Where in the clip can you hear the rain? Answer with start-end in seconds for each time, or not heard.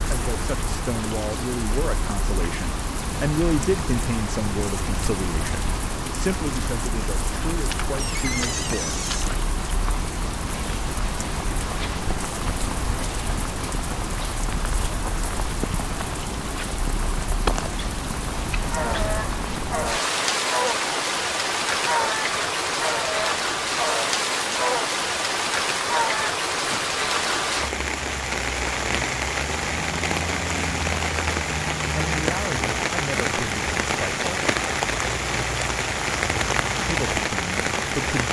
0.0-38.2.